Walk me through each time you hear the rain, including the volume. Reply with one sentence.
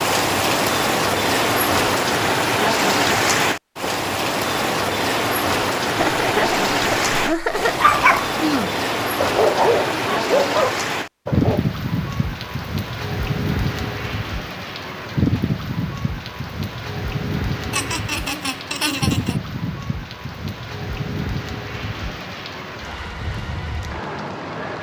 The rain can be heard from 0.0 to 24.7 s, getting quieter.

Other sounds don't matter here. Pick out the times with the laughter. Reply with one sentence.
The laughter can be heard from 6.0 to 7.8 s and from 17.7 to 19.4 s.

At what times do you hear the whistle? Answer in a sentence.
The whistle can't be heard in this clip.